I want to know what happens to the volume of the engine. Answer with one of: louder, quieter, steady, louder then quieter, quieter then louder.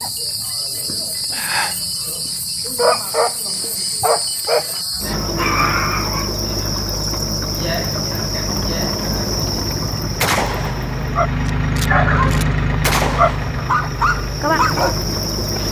louder then quieter.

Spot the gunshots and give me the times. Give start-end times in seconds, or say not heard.
10.2-13.6.